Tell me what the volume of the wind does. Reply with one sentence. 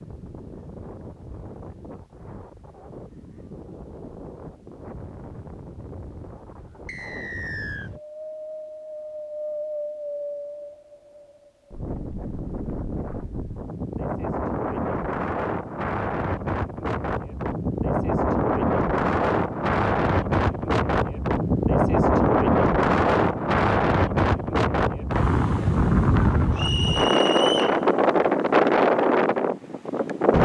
The loudness of the wind goes up.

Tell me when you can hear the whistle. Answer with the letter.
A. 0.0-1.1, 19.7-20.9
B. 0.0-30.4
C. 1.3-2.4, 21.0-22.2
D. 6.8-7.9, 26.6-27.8
D.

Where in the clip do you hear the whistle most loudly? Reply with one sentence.
The volume of the whistle peaks at 27 seconds.